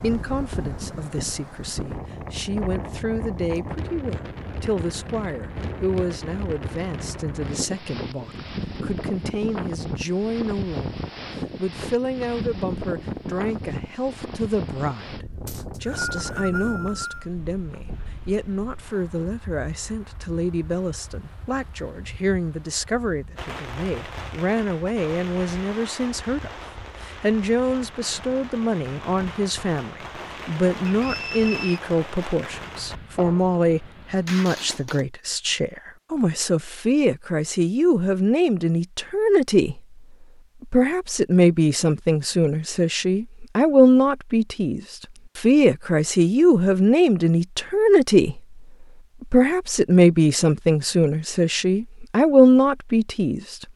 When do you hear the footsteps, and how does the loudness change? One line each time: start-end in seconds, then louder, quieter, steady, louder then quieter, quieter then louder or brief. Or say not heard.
not heard.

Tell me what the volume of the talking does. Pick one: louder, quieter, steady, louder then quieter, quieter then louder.
louder.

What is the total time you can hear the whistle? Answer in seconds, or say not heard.
3 s.